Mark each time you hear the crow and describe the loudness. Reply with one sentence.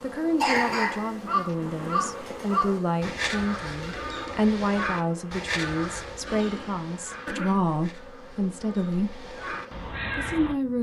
You can hear the crow from 1.2 to 10.6 s, getting quieter then louder.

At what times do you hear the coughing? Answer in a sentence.
The coughing can be heard from 0.4 to 1.5 s and from 6.2 to 7.6 s.